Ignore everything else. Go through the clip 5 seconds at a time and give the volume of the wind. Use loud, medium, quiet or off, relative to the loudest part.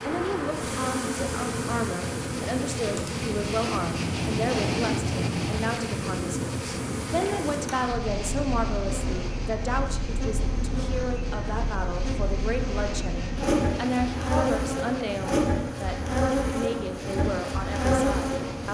loud, loud, medium, medium.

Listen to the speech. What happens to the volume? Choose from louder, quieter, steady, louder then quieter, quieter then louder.
steady.